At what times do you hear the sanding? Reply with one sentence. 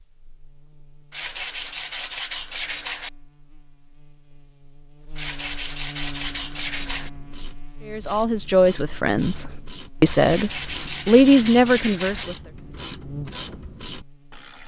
The sanding can be heard from 1.1 to 3.1 s, from 5.2 to 7.1 s and from 10.2 to 12.2 s.